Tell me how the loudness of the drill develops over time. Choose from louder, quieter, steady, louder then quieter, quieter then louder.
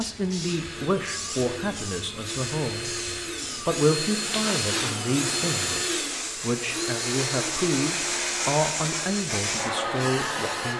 louder then quieter.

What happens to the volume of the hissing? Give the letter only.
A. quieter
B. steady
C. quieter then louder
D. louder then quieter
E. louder
E.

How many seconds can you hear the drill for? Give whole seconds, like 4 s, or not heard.
11 s.